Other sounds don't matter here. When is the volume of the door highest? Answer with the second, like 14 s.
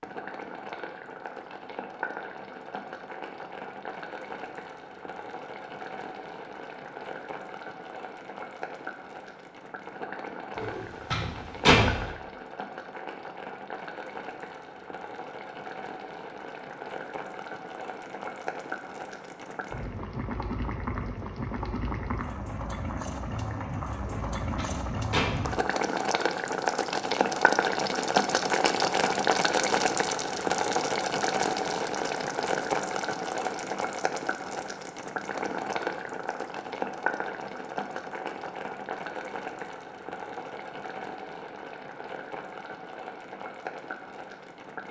12 s.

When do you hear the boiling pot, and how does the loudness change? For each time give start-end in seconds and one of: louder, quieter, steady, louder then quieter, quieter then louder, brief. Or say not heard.
0.0-44.8 louder then quieter.